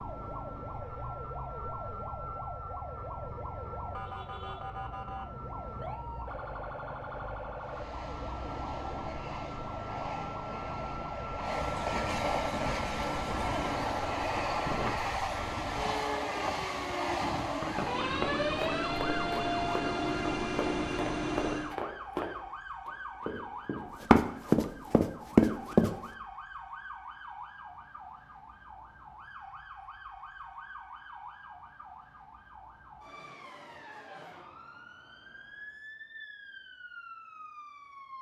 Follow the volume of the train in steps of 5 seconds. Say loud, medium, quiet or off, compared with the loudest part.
off, medium, loud, loud, loud, off, off, off.